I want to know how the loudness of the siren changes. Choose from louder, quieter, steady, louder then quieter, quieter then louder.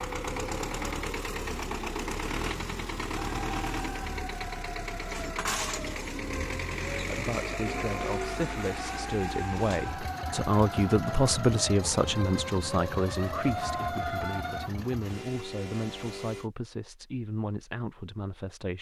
louder.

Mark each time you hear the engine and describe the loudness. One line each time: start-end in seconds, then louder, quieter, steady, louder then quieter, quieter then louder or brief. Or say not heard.
0.0-16.5 quieter.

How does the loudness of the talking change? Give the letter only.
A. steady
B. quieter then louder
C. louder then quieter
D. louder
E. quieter
C.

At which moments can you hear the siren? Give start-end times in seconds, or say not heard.
3.1-14.7.